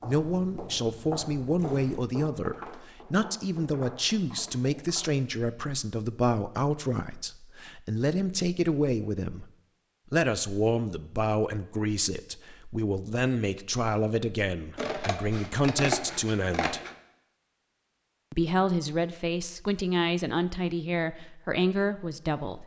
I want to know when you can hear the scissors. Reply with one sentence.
You can hear the scissors from 14.8 to 16.9 s.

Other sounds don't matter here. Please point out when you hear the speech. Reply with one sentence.
You can hear the speech from 0.0 to 9.4 s, from 10.1 to 16.8 s and from 18.3 to 22.6 s.